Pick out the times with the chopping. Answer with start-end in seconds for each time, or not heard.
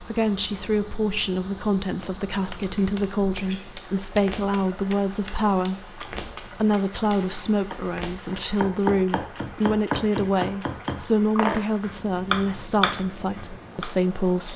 2.0-13.9.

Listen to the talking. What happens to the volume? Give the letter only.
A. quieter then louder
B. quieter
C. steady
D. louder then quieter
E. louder
C.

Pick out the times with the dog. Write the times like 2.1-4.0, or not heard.
not heard.